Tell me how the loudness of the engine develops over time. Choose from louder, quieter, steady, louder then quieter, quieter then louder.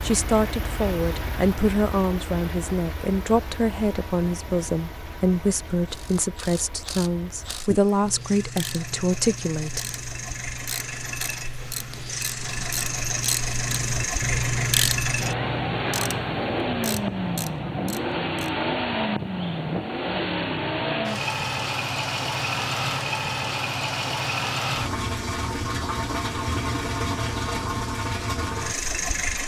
louder.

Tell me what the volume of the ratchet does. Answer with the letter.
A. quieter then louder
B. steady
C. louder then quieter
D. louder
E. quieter
C.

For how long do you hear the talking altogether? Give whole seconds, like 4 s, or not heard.
10 s.